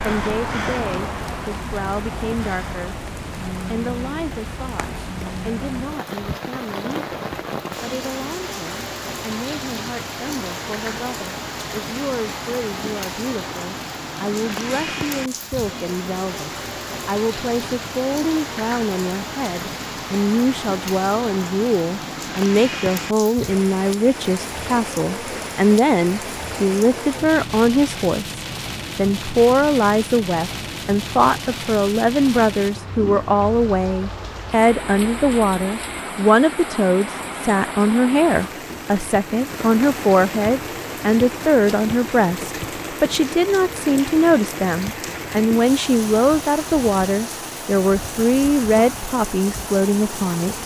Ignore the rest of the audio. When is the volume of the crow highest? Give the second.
1 s.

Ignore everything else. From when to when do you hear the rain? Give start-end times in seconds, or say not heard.
0.0-50.6.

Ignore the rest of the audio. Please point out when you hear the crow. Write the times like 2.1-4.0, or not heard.
0.0-3.0.